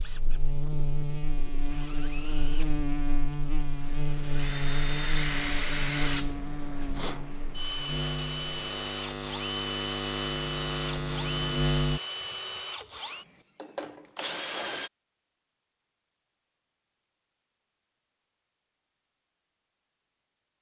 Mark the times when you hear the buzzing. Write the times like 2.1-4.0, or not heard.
0.0-12.0.